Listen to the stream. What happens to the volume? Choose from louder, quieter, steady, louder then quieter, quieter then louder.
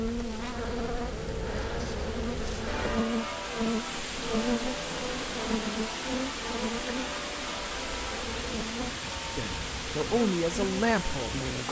louder.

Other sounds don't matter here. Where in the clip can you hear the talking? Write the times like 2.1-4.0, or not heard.
9.3-11.4.